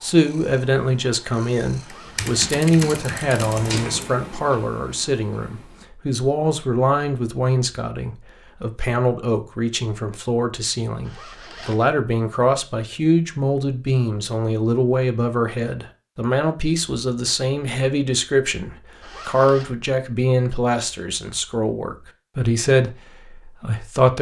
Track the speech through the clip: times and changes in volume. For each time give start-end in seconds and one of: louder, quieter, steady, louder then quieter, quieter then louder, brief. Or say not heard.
0.0-22.9 steady
23.6-24.1 brief.